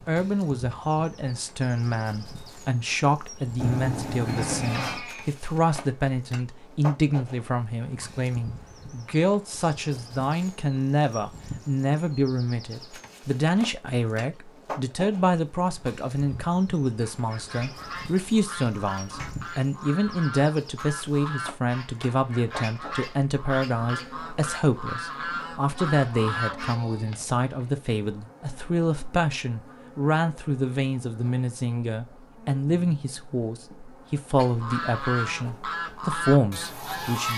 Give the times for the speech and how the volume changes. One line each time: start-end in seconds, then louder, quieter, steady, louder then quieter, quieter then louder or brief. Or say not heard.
0.1-37.3 steady.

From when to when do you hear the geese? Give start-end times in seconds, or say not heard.
17.0-26.8, 34.4-37.3.